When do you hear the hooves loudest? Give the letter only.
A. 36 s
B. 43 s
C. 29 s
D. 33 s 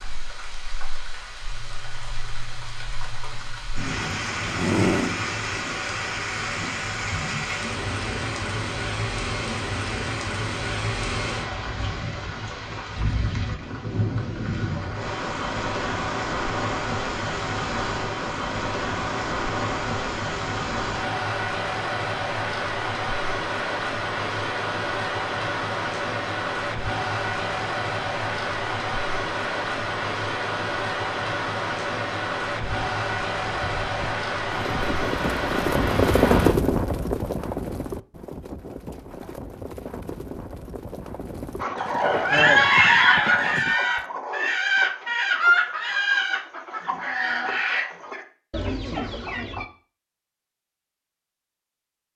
A.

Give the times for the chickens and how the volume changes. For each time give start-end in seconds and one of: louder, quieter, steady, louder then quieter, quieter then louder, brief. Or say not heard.
41.6-49.6 quieter.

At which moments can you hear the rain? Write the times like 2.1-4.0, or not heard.
0.0-36.5.